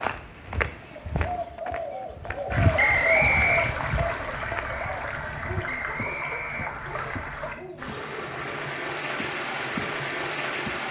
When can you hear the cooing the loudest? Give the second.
3 s.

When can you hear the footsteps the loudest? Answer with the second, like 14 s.
3 s.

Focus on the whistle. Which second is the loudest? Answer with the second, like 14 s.
3 s.